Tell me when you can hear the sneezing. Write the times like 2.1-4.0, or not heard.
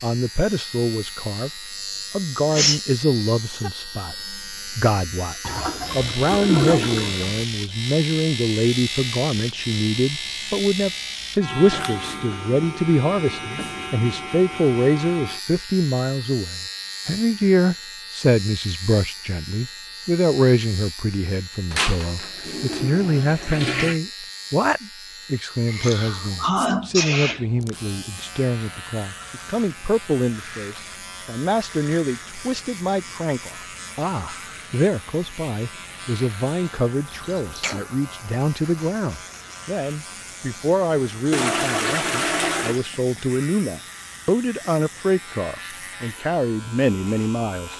2.5-3.7, 25.6-27.4, 37.1-37.8.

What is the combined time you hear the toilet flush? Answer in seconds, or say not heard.
6 s.